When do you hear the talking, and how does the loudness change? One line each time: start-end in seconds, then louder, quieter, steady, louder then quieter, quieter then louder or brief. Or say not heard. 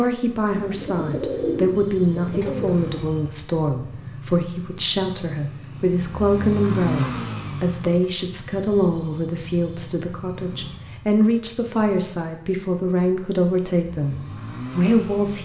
0.0-15.3 steady.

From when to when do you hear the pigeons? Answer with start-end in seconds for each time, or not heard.
0.5-2.9.